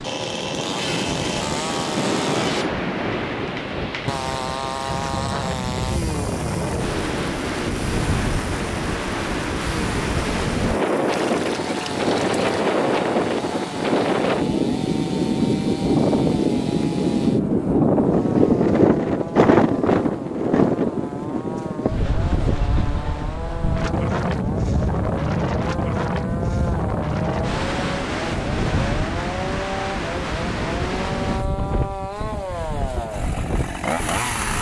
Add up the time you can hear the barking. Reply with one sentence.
You can't hear the barking here.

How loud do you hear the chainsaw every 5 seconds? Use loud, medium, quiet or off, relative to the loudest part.
loud, loud, medium, medium, medium, loud, loud.